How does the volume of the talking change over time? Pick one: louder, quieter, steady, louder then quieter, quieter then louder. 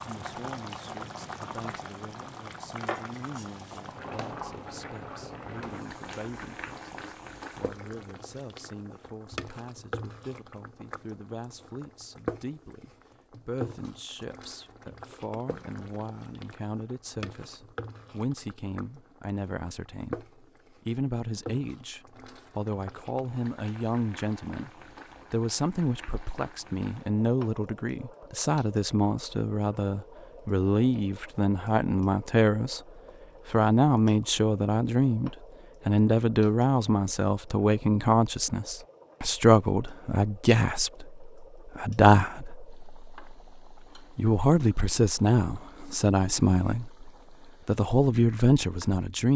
louder.